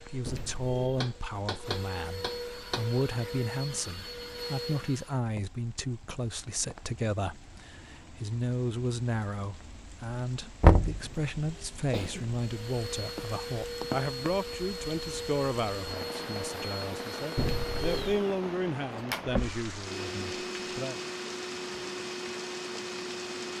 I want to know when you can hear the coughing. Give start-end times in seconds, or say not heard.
0.2-1.1, 11.0-12.4, 17.4-18.2.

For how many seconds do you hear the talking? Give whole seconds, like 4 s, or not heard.
21 s.